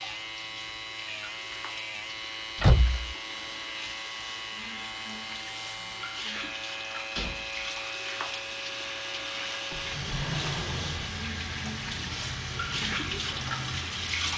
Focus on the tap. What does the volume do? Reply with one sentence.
The loudness of the tap goes up.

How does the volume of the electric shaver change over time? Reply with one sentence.
The loudness of the electric shaver stays about the same.